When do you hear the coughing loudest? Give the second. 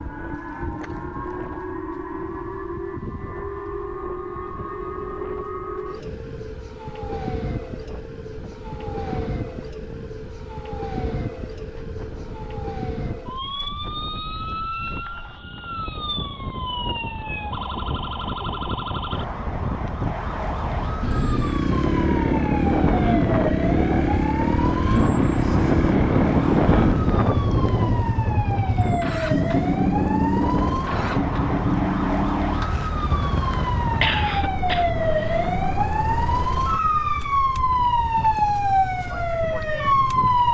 34 s.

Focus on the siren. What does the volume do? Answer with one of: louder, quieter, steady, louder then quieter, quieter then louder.
louder.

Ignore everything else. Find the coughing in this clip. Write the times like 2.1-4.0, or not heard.
34.0-35.5.